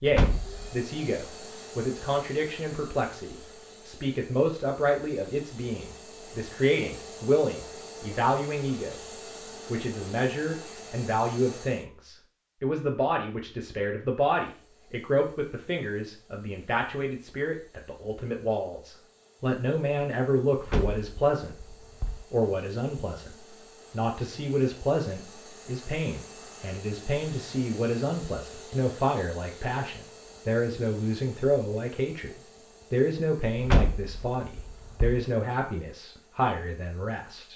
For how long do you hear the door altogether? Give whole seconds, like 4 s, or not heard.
4 s.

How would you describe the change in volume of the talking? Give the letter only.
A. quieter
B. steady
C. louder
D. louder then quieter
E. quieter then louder
B.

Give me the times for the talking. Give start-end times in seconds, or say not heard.
0.0-9.0, 9.7-21.6, 22.3-37.5.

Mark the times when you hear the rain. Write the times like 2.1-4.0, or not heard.
not heard.